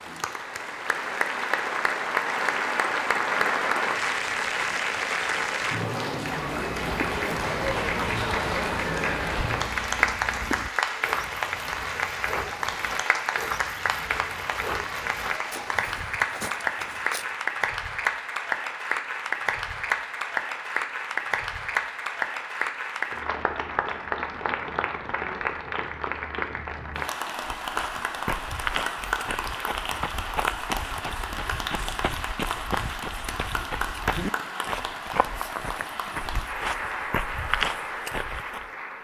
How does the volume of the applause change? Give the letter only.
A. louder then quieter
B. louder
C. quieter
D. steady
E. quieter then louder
C.